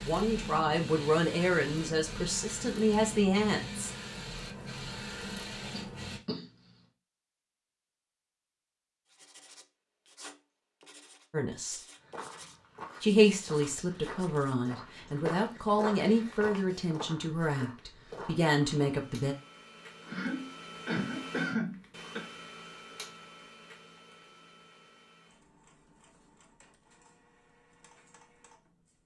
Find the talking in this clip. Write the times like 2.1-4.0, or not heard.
0.0-3.9, 11.3-11.8, 13.0-19.4.